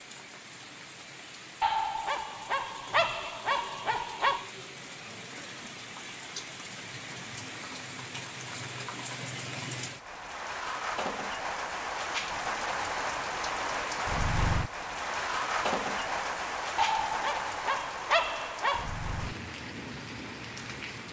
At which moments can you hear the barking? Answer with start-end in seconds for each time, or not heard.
1.6-4.5, 16.8-18.9.